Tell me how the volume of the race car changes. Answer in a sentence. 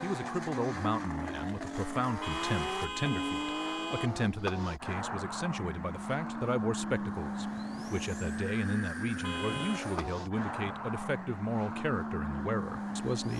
The loudness of the race car stays about the same.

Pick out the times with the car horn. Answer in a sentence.
The car horn can be heard from 2.2 to 4.1 s and from 9.2 to 9.8 s.